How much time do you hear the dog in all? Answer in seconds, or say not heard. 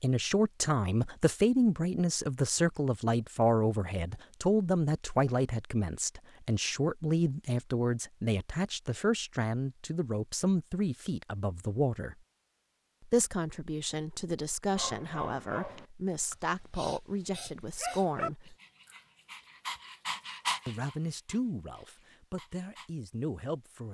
8 s.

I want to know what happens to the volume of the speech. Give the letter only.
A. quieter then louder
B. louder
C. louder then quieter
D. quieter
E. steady
D.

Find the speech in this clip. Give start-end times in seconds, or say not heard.
0.0-12.2, 13.0-18.6, 20.6-23.9.